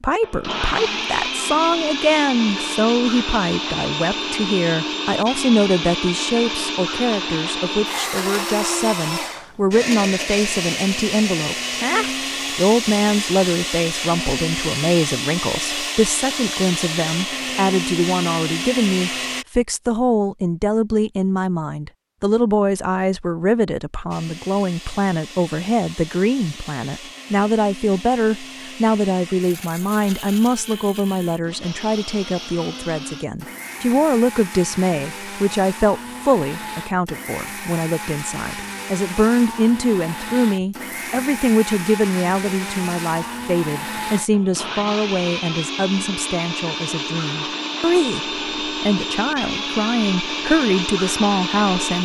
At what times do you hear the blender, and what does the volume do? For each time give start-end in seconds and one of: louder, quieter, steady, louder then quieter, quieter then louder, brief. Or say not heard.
0.2-19.4 steady
24.1-51.9 louder.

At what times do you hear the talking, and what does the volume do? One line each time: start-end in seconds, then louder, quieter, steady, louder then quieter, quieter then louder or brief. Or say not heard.
0.0-51.9 steady.